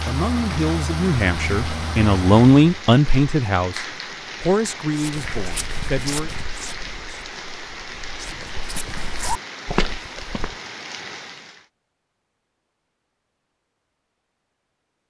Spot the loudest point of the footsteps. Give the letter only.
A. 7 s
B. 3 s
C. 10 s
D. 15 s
C.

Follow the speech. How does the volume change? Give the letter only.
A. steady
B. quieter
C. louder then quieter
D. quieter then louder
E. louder
C.